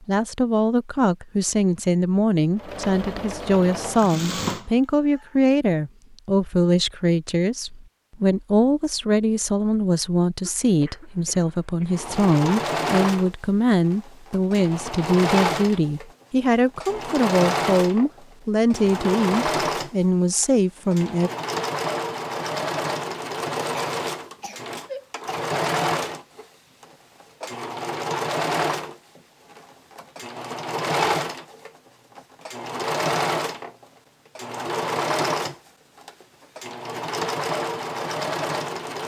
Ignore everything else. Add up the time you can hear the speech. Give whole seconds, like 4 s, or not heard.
21 s.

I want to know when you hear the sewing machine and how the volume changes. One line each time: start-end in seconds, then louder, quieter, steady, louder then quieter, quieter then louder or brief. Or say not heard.
2.5-5.4 brief
11.8-39.0 steady.